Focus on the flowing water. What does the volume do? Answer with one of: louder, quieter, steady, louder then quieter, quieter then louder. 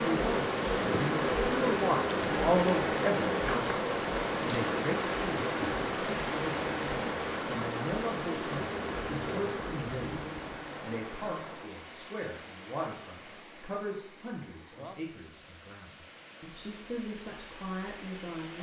quieter.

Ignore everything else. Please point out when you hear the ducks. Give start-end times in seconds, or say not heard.
not heard.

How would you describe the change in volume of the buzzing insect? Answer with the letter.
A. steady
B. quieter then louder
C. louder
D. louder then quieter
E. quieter
E.